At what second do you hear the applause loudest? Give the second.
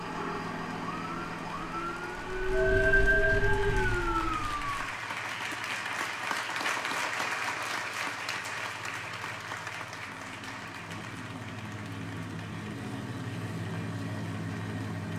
7 s.